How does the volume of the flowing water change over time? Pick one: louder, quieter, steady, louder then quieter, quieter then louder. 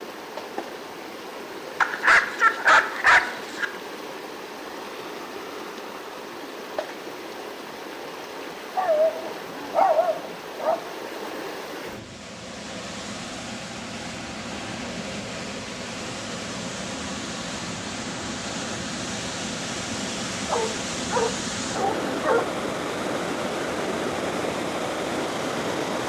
louder.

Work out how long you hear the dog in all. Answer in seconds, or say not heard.
6 s.